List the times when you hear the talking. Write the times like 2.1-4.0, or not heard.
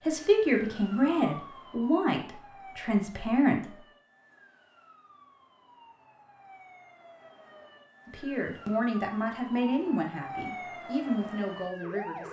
0.0-3.8, 8.1-12.2.